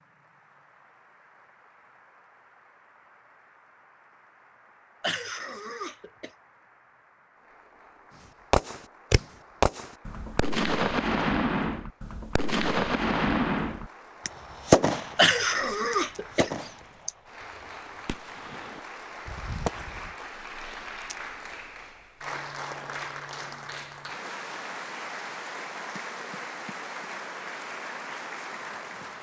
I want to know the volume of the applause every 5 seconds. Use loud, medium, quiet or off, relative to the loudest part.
quiet, quiet, quiet, medium, loud, loud.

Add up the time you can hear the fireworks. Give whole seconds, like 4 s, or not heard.
12 s.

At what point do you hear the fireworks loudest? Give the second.
15 s.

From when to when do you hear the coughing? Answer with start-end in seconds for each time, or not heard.
5.0-6.3, 15.2-17.1.